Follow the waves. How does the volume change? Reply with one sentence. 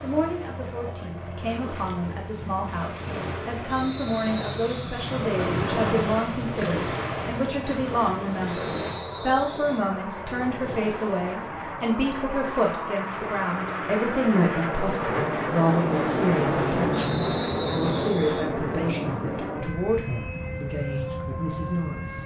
The loudness of the waves goes up, then down.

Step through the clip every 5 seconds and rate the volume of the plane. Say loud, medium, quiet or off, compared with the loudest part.
quiet, medium, medium, loud, medium.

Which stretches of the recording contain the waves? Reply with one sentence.
You can hear the waves from 0.0 to 11.6 s.